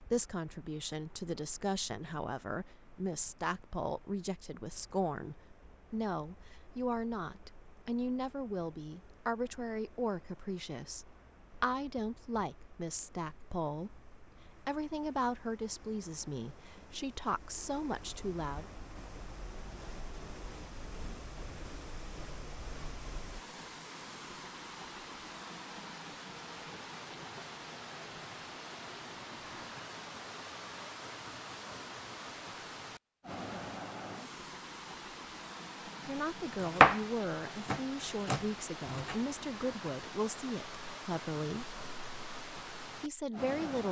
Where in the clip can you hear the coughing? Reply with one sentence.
You can't hear the coughing here.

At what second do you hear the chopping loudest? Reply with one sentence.
The volume of the chopping peaks at 37 seconds.